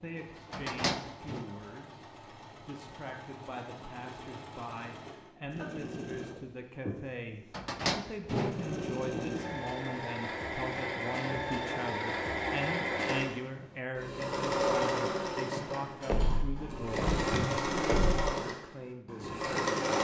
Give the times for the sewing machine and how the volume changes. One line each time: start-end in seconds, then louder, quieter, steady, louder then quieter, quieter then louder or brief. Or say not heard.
0.0-20.0 louder.